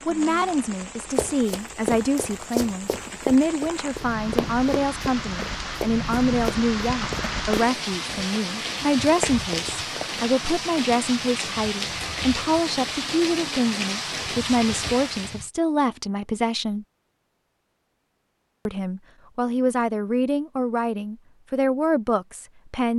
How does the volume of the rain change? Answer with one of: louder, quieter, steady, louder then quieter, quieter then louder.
louder.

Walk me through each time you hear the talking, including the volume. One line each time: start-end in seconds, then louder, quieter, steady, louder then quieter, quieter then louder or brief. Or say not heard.
0.1-16.9 steady
18.6-22.9 steady.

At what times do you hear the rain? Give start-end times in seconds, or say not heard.
0.0-15.5.